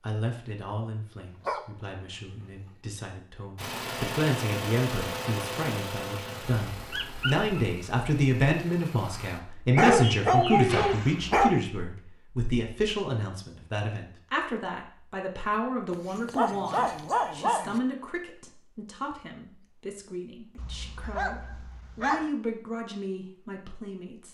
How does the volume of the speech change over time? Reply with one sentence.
The loudness of the speech goes up, then down.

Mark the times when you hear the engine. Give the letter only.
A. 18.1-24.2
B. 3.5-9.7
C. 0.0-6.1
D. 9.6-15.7
B.